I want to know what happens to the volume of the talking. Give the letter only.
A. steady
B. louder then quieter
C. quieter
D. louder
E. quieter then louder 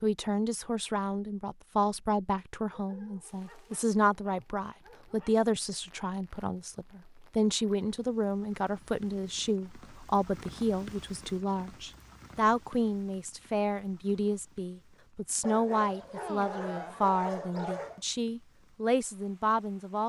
A.